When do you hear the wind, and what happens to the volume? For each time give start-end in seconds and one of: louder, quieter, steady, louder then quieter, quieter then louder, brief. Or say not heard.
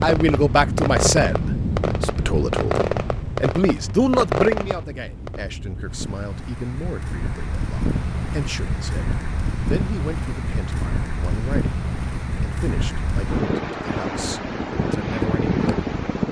0.0-16.2 quieter then louder.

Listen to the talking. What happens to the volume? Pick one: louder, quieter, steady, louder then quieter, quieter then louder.
quieter.